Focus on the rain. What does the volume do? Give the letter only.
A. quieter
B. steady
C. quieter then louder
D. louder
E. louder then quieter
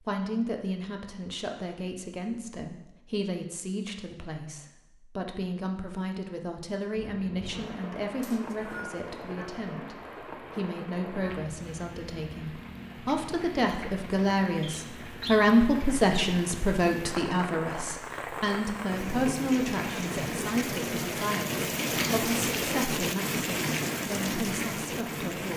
D.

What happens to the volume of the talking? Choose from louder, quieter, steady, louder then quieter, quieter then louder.
louder then quieter.